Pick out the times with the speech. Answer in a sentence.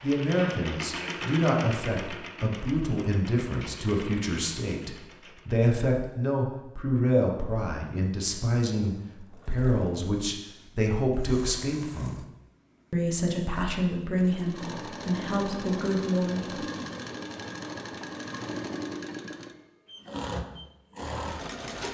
The speech can be heard from 0.0 to 12.2 s and from 12.9 to 16.6 s.